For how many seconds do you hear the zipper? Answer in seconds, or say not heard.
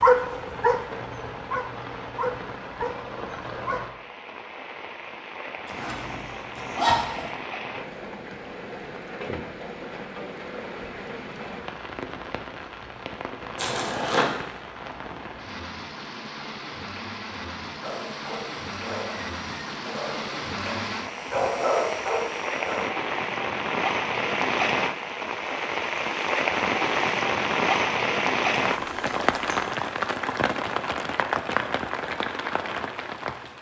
3 s.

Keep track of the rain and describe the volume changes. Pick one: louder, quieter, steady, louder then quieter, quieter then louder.
louder.